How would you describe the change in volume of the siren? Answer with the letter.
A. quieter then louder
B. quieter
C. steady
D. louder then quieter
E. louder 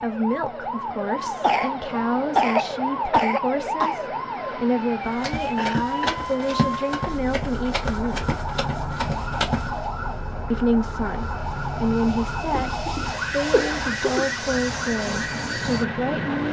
C.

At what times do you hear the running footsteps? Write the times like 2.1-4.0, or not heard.
5.0-9.9.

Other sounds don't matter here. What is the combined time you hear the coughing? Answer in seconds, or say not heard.
5 s.